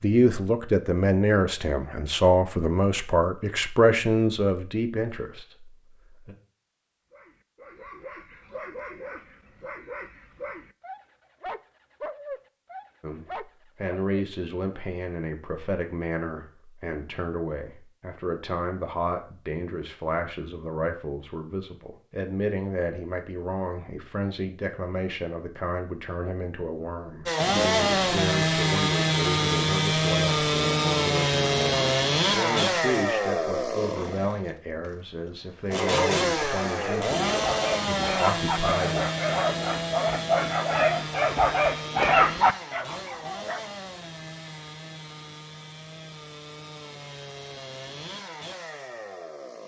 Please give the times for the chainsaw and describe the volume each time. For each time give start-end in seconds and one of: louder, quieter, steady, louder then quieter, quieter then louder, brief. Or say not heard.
27.2-49.6 quieter.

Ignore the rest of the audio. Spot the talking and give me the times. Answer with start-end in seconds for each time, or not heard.
0.0-6.3, 13.0-39.0.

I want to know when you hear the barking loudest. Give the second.
42 s.